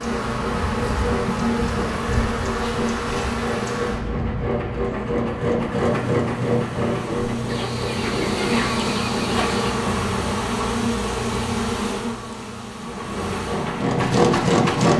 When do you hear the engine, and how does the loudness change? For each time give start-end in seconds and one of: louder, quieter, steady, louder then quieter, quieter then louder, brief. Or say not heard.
0.0-10.4 louder then quieter
12.8-14.9 brief.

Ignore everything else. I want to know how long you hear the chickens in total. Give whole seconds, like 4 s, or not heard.
2 s.